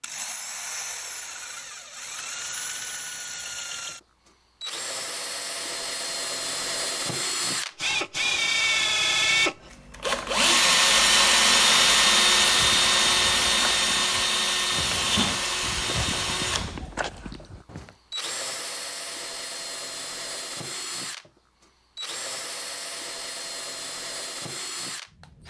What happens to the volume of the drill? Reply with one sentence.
The volume of the drill goes up, then down.